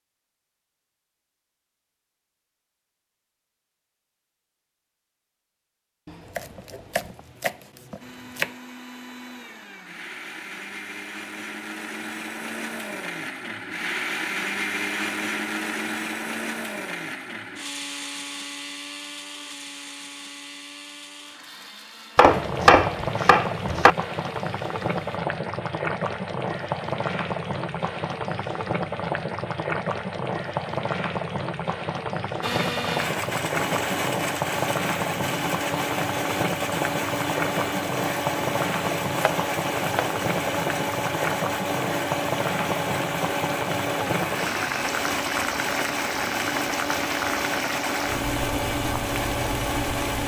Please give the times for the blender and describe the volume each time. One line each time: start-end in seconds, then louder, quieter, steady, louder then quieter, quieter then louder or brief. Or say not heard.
8.0-25.2 louder then quieter
32.4-50.2 steady.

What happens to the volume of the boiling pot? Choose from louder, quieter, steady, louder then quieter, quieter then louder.
steady.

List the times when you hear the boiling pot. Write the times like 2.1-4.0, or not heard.
22.2-50.2.